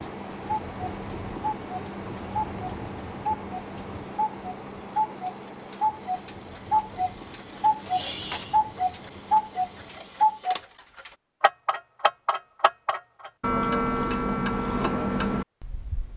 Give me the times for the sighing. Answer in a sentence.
You can hear the sighing from 7.5 to 8.6 s.